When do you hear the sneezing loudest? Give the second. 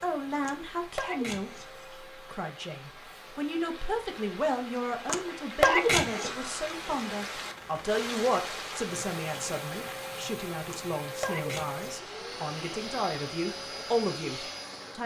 6 s.